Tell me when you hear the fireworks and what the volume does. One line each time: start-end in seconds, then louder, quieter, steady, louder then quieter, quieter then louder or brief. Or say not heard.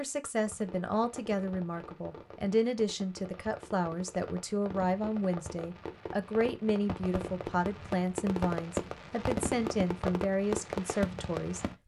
0.5-11.8 louder.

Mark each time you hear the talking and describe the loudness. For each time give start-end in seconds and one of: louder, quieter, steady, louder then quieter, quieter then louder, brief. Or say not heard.
0.0-11.7 steady.